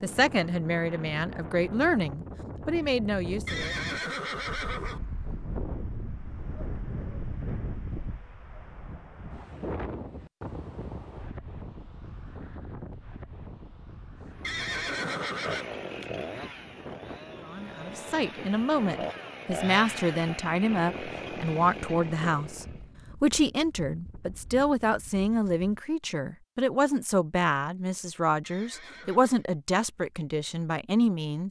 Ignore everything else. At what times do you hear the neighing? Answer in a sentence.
You can hear the neighing from 3.5 to 5.0 s, from 14.4 to 15.7 s and from 28.4 to 29.4 s.